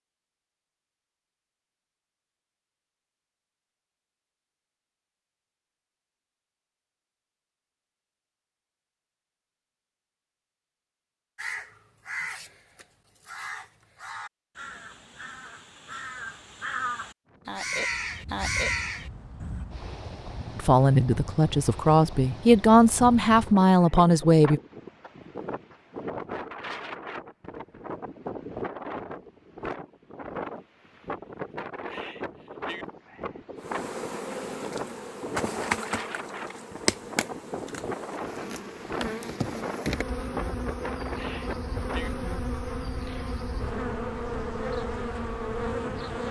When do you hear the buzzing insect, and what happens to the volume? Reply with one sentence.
The buzzing insect can be heard from 33.5 to 46.2 s, at a steady volume.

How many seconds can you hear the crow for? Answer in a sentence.
You can hear the crow for 8 seconds altogether.